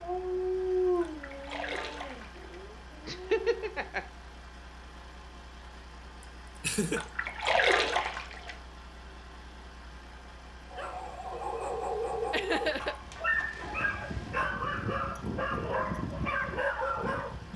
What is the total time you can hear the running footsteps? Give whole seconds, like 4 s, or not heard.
not heard.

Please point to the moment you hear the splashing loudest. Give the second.
8 s.